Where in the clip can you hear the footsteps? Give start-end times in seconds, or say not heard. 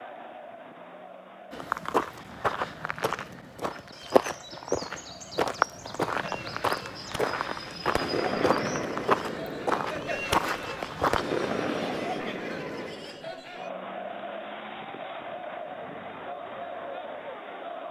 1.5-11.2.